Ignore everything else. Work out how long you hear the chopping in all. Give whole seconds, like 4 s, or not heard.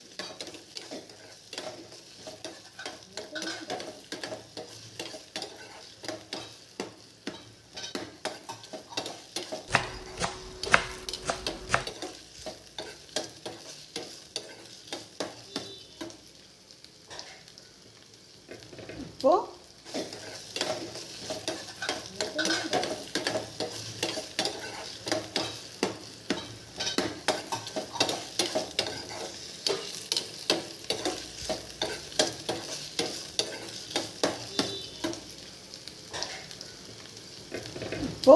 2 s.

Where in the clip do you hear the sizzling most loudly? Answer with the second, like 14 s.
38 s.